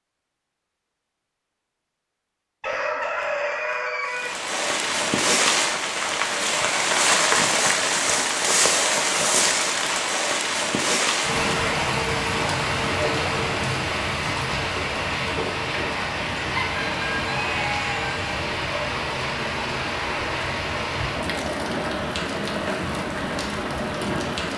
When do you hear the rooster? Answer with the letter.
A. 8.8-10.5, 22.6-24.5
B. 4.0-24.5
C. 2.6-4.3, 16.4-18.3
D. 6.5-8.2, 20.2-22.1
C.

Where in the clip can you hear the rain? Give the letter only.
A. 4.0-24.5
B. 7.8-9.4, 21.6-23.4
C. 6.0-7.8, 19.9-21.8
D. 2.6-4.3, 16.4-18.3
A.